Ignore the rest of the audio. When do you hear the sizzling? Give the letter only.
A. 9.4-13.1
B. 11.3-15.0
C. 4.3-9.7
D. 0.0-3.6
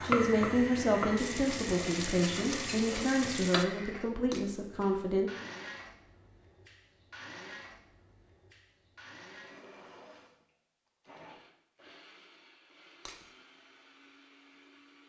D.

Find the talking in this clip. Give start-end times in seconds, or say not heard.
0.0-5.3.